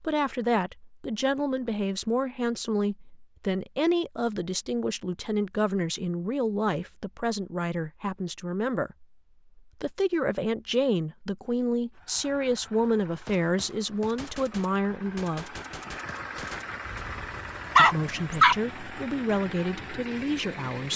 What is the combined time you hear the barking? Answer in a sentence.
The barking can be heard for 2 seconds in total.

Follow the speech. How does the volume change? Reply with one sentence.
The loudness of the speech stays about the same.